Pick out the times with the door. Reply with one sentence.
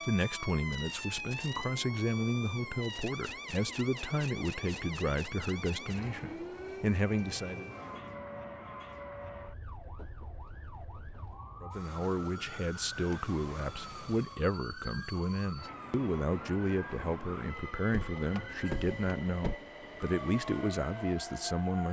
The door can be heard from 17.6 to 19.6 s.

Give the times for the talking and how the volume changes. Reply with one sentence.
The talking can be heard from 0.1 to 7.7 s, at a steady volume; and from 11.6 to 21.8 s, at a steady volume.